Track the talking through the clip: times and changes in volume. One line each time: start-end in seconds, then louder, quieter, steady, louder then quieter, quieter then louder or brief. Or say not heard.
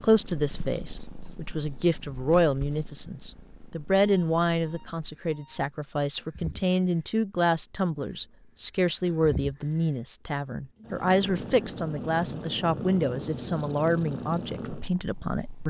0.0-15.6 steady.